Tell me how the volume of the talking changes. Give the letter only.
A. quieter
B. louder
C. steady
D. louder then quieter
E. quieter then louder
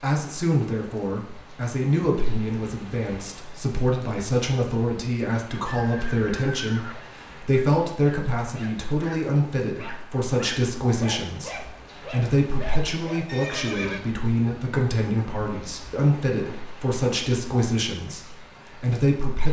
C.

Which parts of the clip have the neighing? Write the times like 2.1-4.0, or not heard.
5.7-7.0, 13.2-14.1.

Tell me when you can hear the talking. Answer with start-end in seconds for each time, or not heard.
0.0-19.4.